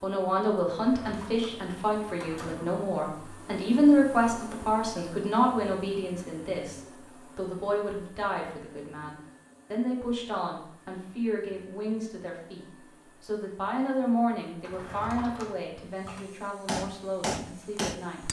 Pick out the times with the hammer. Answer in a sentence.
The hammer can be heard from 16.6 to 18.2 s.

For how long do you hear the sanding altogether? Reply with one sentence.
The sanding can't be heard in this clip.